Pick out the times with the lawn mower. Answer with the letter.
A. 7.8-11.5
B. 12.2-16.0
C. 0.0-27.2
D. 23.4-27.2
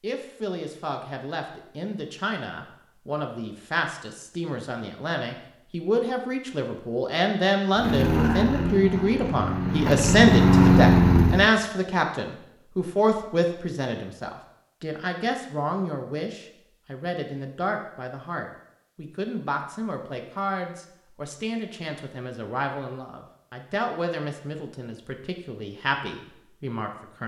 A.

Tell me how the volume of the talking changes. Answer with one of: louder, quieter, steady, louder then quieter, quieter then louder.
louder then quieter.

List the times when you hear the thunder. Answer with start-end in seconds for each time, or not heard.
not heard.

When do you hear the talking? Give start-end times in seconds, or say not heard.
0.0-27.2.